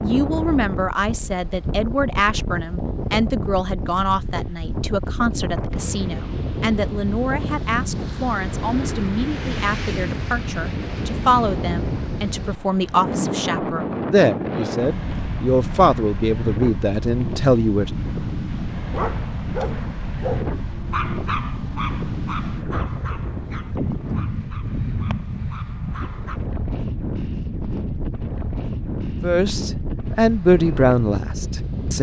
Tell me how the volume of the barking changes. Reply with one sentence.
The loudness of the barking goes down.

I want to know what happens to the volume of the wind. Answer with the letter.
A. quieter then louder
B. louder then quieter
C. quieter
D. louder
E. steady
E.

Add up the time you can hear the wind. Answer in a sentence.
The wind can be heard for 32 seconds in total.